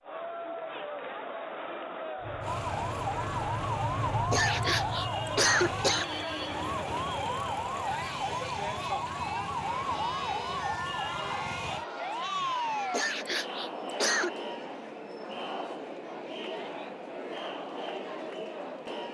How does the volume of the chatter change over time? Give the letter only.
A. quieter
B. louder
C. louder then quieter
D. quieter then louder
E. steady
E.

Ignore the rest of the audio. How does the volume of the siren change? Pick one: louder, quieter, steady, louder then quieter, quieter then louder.
steady.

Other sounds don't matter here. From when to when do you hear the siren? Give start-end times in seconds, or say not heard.
2.4-13.1.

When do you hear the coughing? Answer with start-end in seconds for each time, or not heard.
4.1-6.0, 12.7-14.3.